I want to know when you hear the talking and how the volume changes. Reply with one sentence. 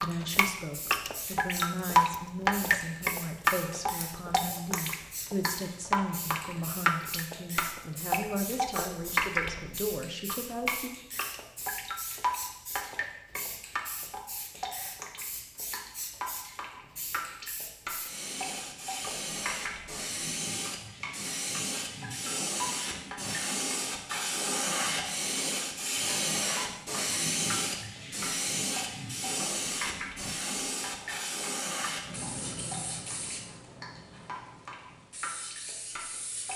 You can hear the talking from 0.0 to 10.9 s, at a steady volume.